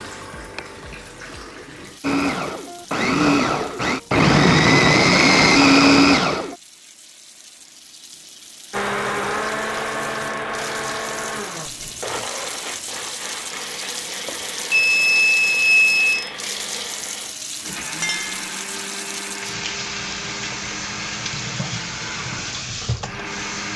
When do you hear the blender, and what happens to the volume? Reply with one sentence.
You can hear the blender from 2.0 to 6.5 s, getting louder; and from 8.7 to 23.7 s, getting quieter.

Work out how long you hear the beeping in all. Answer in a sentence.
You can hear the beeping for 2 seconds altogether.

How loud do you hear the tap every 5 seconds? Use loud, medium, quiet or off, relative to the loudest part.
medium, quiet, loud, loud, loud.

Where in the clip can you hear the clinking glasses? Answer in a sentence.
You can hear the clinking glasses from 18.0 to 18.5 s.